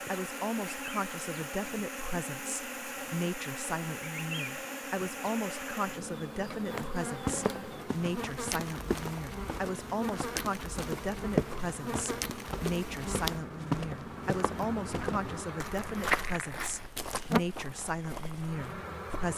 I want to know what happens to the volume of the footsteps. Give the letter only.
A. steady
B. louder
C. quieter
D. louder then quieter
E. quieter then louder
D.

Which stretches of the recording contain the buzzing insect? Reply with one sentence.
The buzzing insect can be heard from 0.0 to 19.3 s.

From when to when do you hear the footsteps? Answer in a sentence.
You can hear the footsteps from 7.2 to 18.7 s.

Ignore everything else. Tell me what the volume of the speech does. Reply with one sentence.
The volume of the speech stays about the same.